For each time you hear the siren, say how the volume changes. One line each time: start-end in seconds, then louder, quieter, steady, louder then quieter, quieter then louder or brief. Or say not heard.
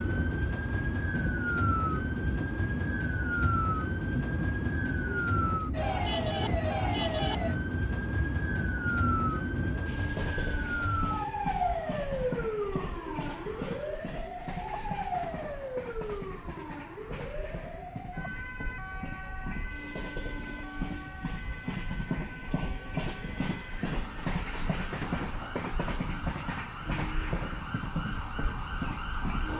0.0-29.5 quieter.